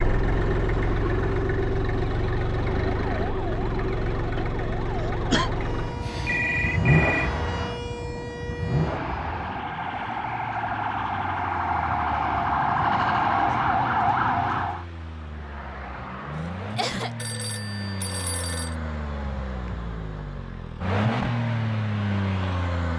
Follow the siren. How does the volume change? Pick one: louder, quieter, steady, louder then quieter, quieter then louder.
louder.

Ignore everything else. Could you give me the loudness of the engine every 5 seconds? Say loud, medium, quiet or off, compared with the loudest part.
loud, loud, quiet, medium, loud.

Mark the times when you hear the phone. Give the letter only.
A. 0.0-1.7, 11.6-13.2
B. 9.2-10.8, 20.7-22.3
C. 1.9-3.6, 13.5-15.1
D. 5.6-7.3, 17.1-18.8
D.